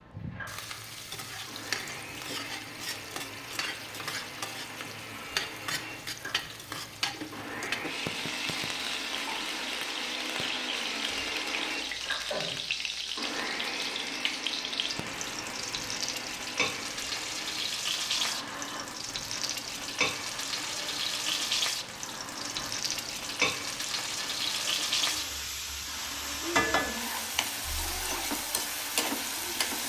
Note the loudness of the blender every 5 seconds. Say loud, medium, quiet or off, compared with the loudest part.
medium, loud, loud, medium, medium, medium.